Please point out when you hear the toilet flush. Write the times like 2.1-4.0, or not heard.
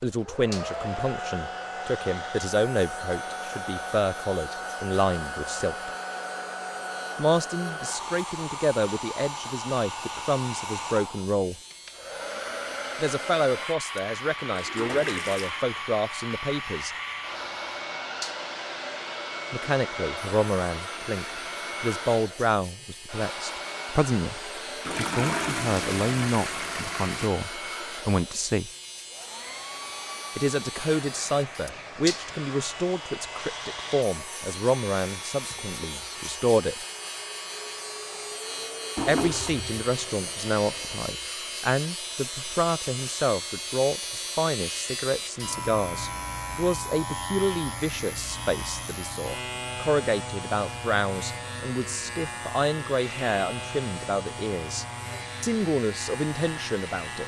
14.5-15.5, 24.8-27.4, 39.0-41.0.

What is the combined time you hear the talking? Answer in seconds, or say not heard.
48 s.